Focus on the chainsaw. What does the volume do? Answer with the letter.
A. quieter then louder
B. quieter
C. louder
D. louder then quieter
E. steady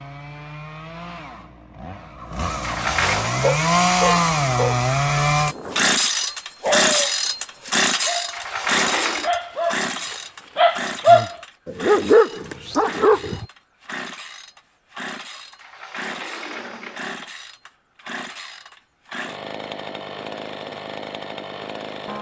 B.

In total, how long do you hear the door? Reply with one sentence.
The door can be heard for 3 seconds in total.